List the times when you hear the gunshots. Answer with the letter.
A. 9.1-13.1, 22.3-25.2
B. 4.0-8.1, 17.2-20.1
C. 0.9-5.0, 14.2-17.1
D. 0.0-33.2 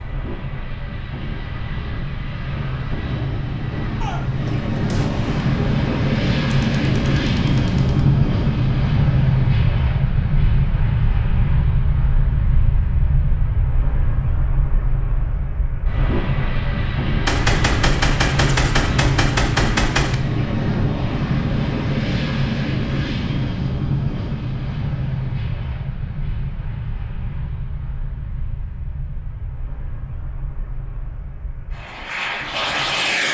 B.